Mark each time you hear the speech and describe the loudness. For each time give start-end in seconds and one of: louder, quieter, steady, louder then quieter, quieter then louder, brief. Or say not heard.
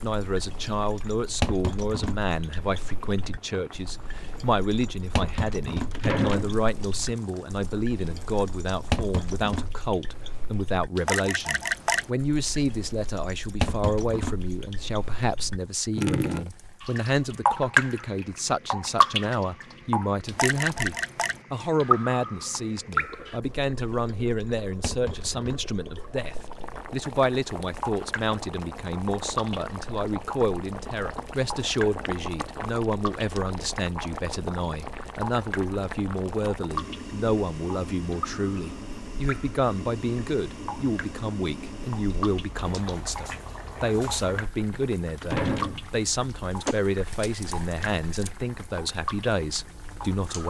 0.0-50.4 steady.